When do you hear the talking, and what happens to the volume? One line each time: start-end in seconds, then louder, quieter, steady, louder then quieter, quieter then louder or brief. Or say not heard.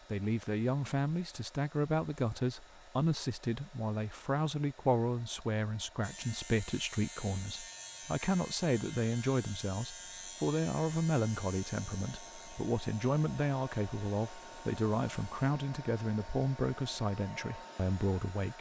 0.1-18.5 steady.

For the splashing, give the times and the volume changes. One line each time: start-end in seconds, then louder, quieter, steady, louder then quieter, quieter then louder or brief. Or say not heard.
not heard.